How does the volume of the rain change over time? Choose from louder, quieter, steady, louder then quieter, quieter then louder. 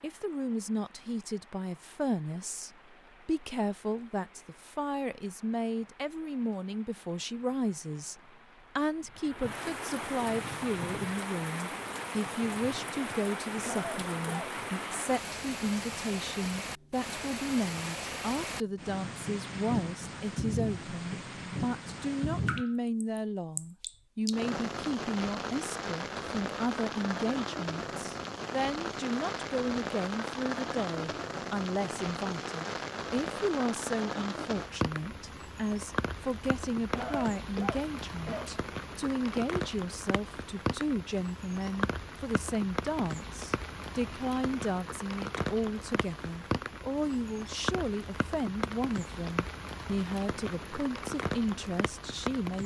louder.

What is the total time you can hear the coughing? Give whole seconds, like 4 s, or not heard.
3 s.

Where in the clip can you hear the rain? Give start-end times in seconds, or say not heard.
0.0-52.6.